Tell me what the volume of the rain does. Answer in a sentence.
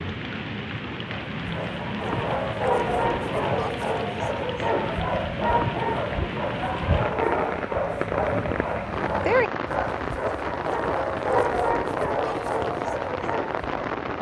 The volume of the rain stays about the same.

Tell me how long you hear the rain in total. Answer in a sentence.
The rain can be heard for 14 seconds in total.